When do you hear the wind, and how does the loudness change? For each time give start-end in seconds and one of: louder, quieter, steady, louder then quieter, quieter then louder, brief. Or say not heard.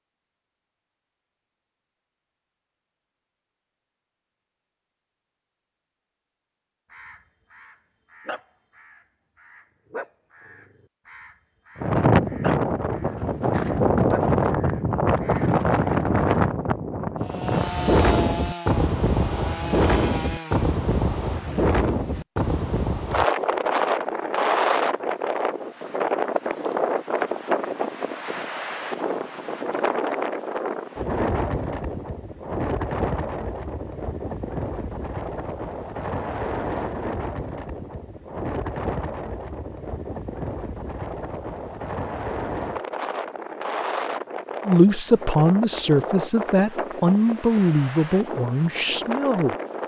11.8-49.8 quieter.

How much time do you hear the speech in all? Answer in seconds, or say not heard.
5 s.